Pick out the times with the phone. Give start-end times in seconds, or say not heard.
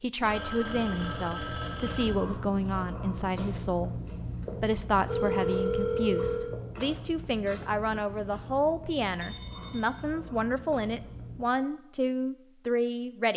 0.2-2.1, 5.0-6.5, 9.2-10.1.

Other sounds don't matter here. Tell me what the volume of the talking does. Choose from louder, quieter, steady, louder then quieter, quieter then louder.
steady.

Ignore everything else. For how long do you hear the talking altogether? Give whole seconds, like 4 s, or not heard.
13 s.